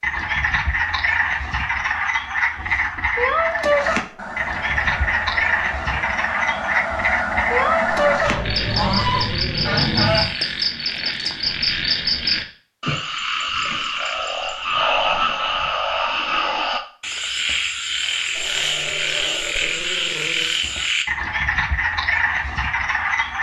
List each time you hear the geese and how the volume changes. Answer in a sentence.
You can hear the geese from 3.7 to 10.2 s, getting louder.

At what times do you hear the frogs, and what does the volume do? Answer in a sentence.
You can hear the frogs from 0.0 to 23.3 s, at a steady volume.